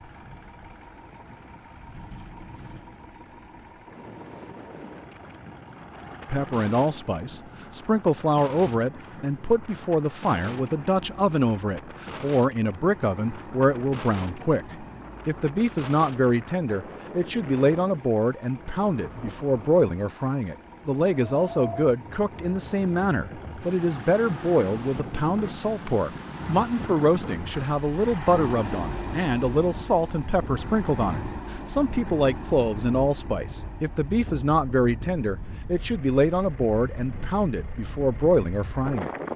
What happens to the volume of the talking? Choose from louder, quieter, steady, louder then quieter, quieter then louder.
steady.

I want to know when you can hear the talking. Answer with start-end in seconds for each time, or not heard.
6.2-39.1.